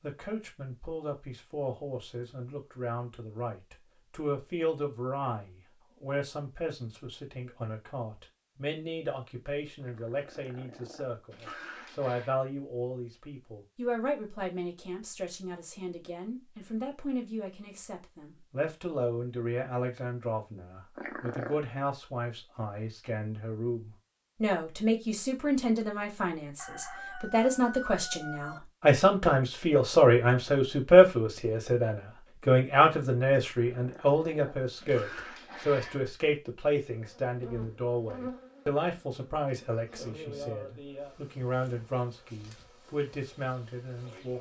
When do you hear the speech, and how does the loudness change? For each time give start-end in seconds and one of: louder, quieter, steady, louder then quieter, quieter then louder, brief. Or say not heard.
0.0-44.3 louder then quieter.